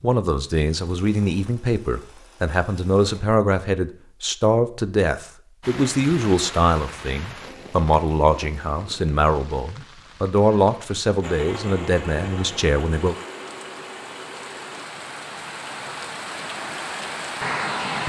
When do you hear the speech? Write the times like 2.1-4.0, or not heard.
0.0-13.2.